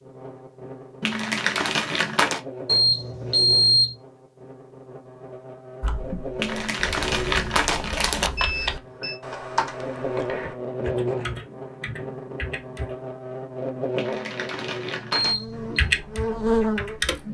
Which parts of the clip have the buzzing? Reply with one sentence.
The buzzing can be heard from 0.0 to 17.1 s.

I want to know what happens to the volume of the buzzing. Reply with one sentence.
The volume of the buzzing goes up.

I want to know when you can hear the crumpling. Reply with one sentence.
You can hear the crumpling from 1.0 to 2.4 s, from 6.3 to 8.3 s and from 13.9 to 15.3 s.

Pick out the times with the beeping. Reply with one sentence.
The beeping can be heard from 2.6 to 4.0 s, from 8.3 to 9.2 s and from 15.1 to 15.8 s.